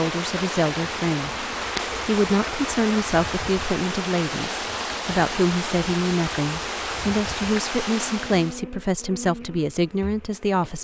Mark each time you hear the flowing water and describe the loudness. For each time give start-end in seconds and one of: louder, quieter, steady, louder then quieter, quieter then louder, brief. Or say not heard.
0.0-8.7 steady.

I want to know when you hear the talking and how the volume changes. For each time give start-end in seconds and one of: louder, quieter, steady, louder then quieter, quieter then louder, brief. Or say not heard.
0.0-1.4 brief
2.0-10.8 steady.